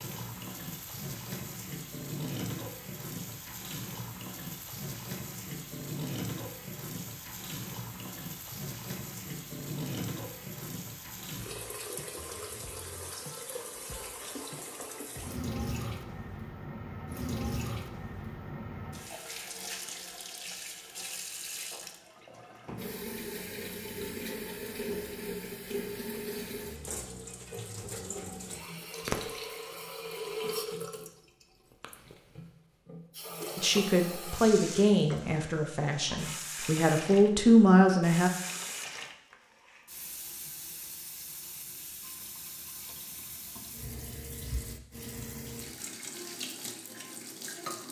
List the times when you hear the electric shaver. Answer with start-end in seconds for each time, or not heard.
not heard.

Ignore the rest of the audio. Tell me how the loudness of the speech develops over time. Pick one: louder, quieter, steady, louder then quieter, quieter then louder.
quieter then louder.